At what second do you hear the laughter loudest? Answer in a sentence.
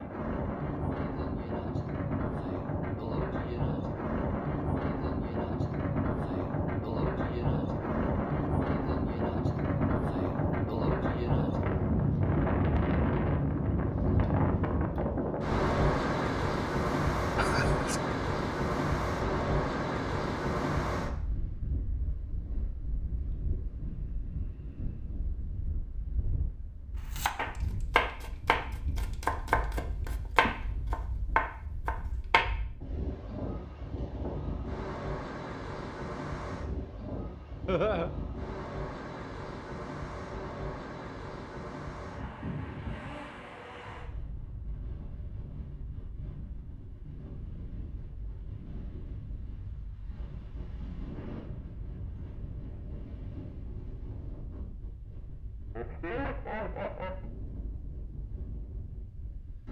The loudest moment of the laughter is at 38 seconds.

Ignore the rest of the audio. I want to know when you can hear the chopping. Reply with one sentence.
The chopping can be heard from 27.1 to 32.5 s.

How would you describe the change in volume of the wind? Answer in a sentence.
The volume of the wind goes down.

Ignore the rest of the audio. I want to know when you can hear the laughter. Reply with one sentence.
You can hear the laughter from 17.4 to 17.9 s, from 37.6 to 38.1 s and from 55.8 to 57.2 s.